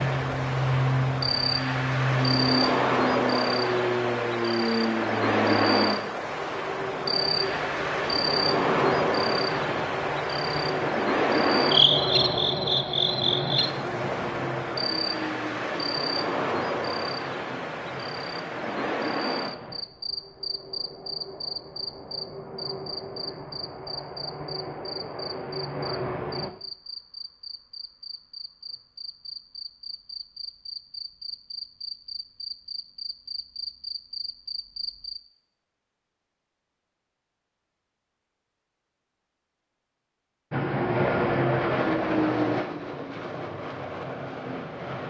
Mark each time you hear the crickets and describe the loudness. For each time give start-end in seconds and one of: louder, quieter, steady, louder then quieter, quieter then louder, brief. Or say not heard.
0.0-35.2 quieter.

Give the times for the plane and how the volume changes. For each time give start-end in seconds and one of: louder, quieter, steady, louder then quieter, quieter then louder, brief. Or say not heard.
0.0-26.5 quieter
40.5-45.0 quieter.